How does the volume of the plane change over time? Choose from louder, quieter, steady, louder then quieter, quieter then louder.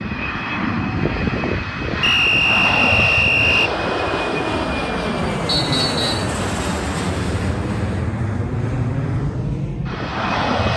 steady.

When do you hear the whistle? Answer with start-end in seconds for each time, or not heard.
2.0-3.7, 5.5-6.3.